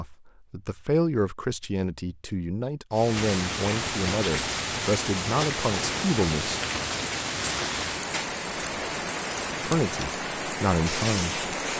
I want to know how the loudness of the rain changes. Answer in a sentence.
The loudness of the rain stays about the same.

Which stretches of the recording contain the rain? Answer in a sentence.
You can hear the rain from 2.9 to 11.7 s.